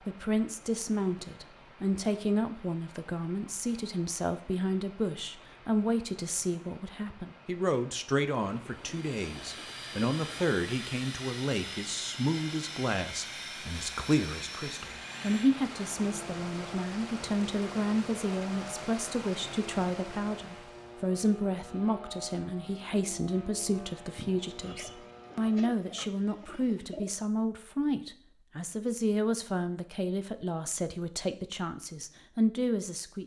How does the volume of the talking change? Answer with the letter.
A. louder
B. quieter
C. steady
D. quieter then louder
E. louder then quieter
C.